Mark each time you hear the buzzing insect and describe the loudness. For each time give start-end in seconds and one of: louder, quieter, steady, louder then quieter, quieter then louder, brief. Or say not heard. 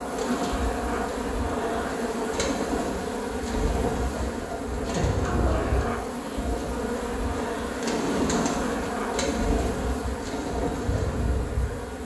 0.0-12.0 steady.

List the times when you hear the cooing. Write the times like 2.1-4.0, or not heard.
0.1-11.3.